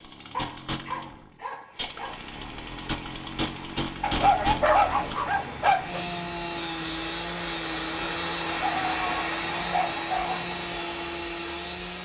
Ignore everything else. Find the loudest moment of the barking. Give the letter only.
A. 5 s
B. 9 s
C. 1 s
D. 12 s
A.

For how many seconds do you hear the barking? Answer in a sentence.
You can hear the barking for 6 seconds altogether.